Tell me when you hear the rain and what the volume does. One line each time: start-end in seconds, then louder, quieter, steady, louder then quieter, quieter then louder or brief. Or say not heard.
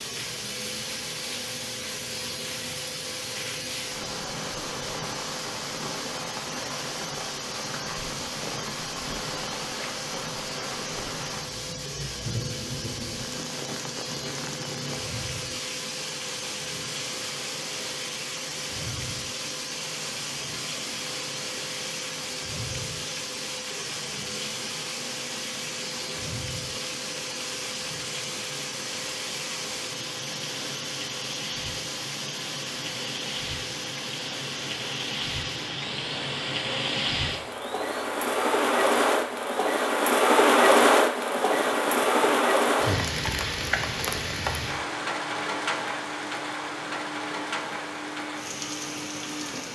0.0-49.7 louder.